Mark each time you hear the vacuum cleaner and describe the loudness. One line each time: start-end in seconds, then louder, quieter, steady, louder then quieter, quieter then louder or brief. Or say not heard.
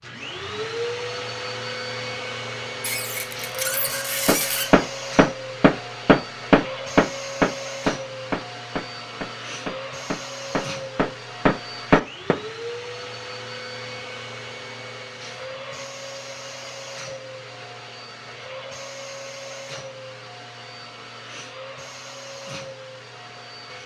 0.0-23.8 quieter.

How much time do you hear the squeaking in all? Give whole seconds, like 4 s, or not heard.
2 s.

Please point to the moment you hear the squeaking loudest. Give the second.
4 s.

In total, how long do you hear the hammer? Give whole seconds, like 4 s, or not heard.
8 s.